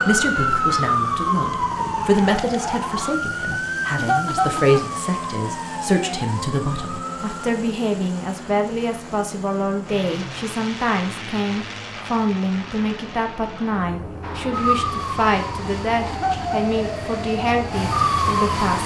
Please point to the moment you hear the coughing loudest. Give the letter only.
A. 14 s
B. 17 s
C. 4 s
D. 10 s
C.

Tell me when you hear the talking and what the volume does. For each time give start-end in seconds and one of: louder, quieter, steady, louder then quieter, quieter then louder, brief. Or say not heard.
0.0-18.8 steady.